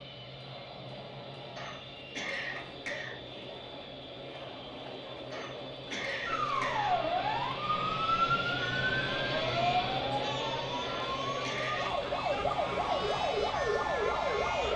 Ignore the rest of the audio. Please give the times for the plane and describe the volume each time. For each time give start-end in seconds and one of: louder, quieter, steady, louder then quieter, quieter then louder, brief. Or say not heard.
0.0-14.7 louder then quieter.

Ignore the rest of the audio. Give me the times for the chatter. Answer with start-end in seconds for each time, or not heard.
0.0-14.7.